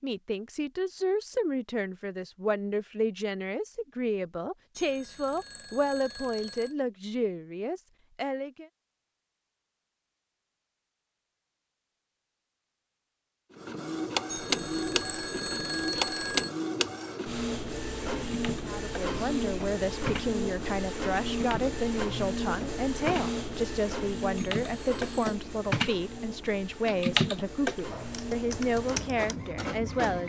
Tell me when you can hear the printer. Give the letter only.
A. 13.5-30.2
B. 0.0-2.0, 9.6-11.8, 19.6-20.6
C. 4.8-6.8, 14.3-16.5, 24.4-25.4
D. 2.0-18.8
A.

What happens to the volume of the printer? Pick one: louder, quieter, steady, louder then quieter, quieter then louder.
quieter.